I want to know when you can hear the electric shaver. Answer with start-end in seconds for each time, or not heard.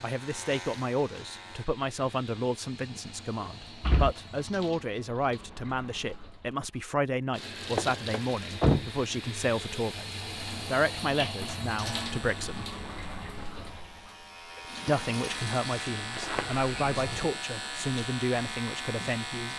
0.0-1.7, 11.8-19.5.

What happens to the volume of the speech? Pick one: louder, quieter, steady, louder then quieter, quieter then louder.
steady.